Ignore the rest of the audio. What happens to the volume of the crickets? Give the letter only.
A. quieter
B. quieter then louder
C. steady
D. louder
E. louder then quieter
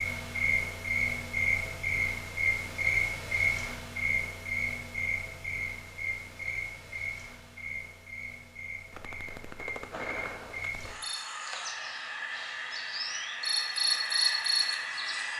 B.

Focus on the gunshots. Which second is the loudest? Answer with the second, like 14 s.
10 s.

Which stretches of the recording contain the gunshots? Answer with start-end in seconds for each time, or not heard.
8.9-10.9.